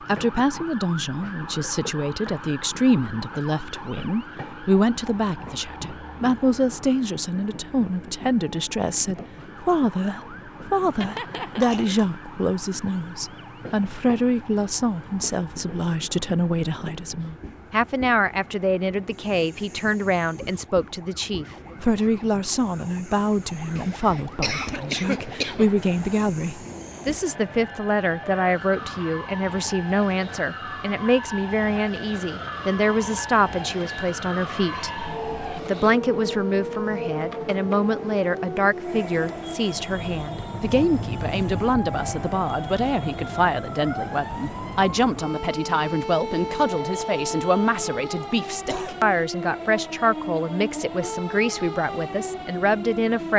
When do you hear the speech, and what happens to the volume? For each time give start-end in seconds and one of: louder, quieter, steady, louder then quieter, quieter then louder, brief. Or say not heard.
0.1-53.3 steady.